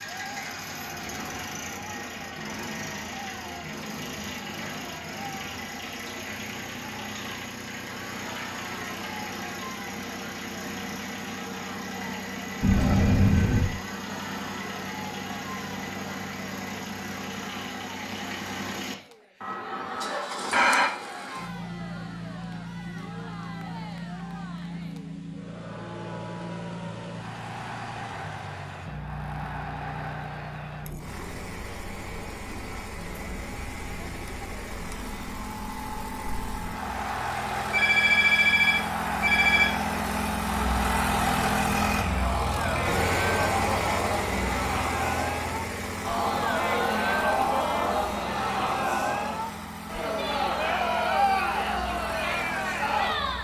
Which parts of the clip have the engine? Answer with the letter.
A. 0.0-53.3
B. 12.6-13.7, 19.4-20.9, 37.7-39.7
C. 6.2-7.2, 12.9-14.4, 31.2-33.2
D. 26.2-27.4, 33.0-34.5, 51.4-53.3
A.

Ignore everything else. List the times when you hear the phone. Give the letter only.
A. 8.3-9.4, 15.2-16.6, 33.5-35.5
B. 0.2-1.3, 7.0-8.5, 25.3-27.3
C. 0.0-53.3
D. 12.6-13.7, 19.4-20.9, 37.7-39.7
D.